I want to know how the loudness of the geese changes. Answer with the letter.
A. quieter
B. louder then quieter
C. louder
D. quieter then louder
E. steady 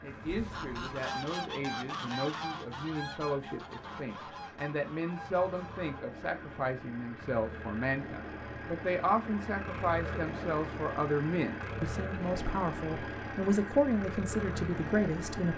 A.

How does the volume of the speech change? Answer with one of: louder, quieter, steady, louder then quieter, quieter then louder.
louder.